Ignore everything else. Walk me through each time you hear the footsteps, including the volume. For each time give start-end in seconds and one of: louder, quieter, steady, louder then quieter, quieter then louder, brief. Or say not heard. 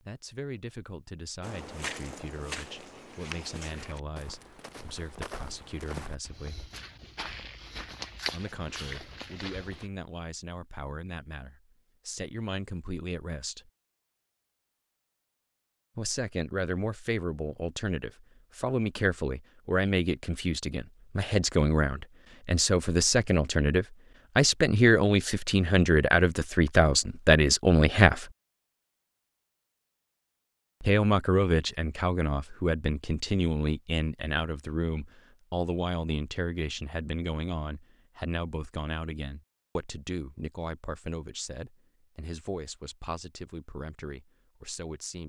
1.4-9.8 quieter then louder.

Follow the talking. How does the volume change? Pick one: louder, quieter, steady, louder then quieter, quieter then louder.
louder then quieter.